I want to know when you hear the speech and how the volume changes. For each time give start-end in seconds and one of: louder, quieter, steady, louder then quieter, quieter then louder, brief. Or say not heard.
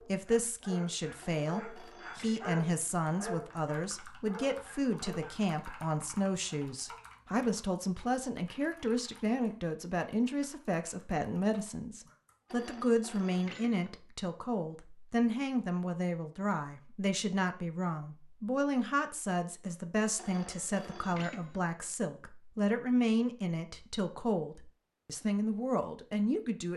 0.1-26.7 steady.